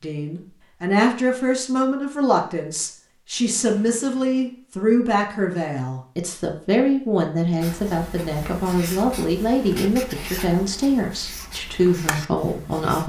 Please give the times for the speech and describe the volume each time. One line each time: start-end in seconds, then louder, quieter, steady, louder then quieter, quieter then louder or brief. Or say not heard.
0.0-13.0 steady.